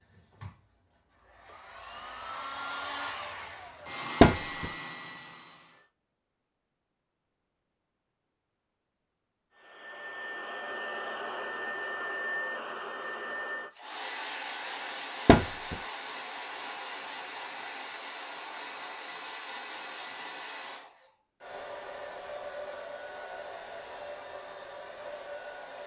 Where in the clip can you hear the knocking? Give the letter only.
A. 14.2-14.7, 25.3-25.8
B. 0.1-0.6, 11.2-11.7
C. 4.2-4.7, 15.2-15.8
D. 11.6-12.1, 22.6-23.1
C.